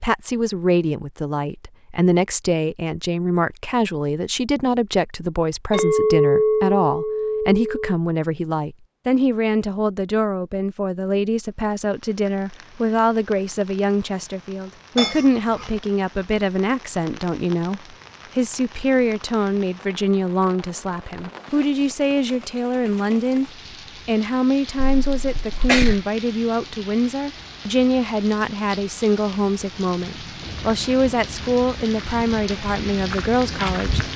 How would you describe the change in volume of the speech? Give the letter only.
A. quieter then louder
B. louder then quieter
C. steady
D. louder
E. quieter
C.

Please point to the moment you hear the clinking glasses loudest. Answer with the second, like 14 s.
6 s.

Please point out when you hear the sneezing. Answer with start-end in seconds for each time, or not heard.
24.8-26.0.